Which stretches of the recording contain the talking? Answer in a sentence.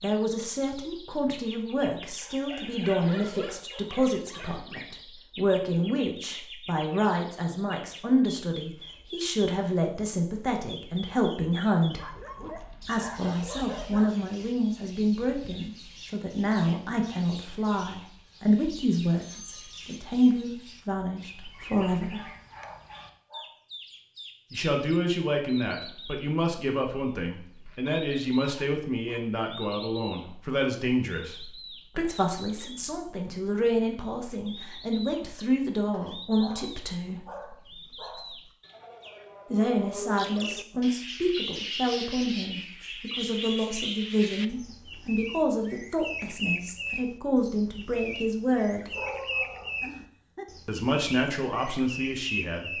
The talking can be heard from 0.0 to 12.1 s, from 12.8 to 22.2 s, from 24.5 to 37.2 s, from 39.5 to 48.9 s and from 50.6 to 52.7 s.